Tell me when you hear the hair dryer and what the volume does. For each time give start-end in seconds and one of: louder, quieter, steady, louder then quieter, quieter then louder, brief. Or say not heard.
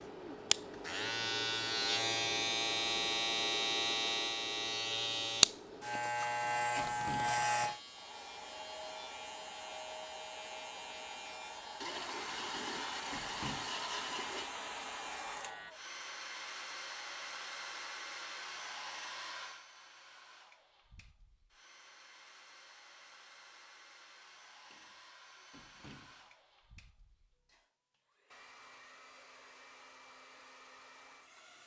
7.9-31.6 quieter.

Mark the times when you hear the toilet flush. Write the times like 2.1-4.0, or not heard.
11.8-14.5.